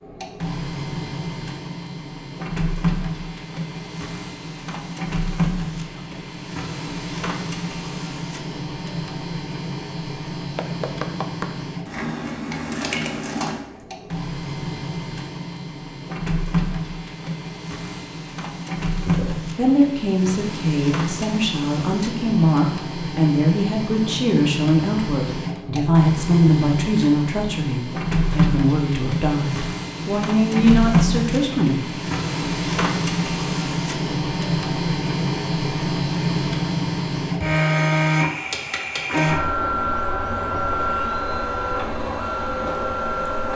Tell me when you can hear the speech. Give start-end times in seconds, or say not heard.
19.1-32.0.